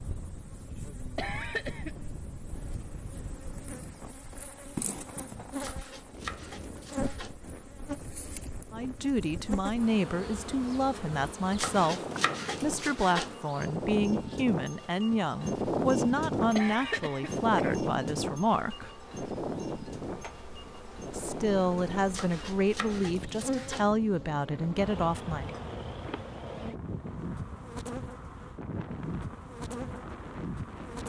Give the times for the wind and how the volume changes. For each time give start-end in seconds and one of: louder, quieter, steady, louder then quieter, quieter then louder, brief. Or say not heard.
0.0-31.0 louder then quieter.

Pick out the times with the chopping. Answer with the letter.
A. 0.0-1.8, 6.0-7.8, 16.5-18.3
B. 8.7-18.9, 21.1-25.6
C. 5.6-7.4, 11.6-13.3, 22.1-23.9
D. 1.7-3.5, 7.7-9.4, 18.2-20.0
C.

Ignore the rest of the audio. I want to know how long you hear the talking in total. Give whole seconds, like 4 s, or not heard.
15 s.